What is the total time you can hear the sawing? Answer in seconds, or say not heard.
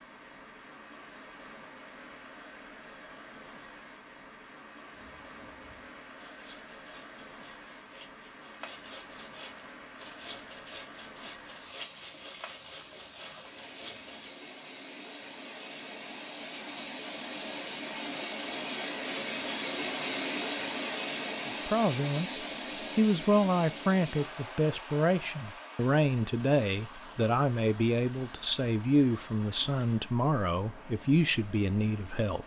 9 s.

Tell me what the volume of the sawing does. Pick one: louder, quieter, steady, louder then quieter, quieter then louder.
louder.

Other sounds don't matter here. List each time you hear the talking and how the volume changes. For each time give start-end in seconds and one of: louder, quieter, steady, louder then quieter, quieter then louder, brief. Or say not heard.
21.6-32.4 steady.